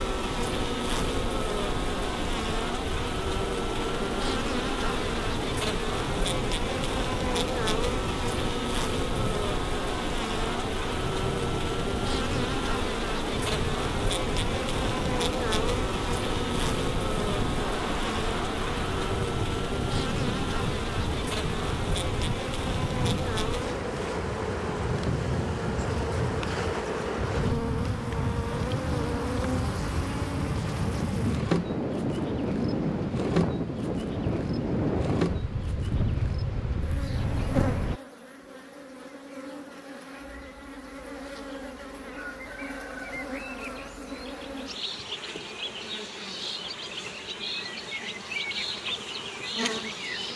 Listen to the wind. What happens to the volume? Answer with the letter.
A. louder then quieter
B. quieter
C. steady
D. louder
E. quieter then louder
D.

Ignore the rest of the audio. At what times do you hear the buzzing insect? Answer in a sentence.
You can hear the buzzing insect from 0.0 to 50.3 s.